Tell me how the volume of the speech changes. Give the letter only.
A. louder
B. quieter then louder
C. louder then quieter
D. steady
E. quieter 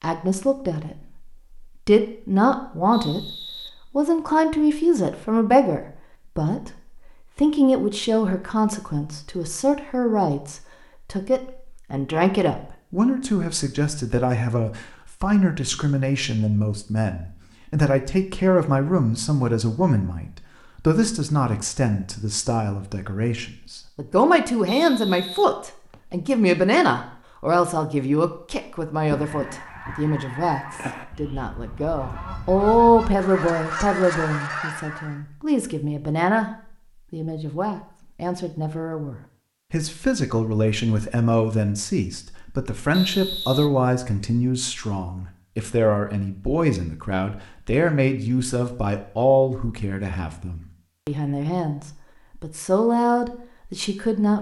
D.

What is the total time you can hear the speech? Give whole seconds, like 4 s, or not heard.
53 s.